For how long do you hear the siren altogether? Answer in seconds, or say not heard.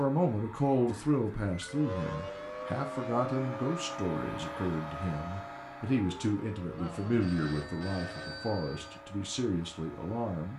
9 s.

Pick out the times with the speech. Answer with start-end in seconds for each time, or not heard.
0.0-10.5.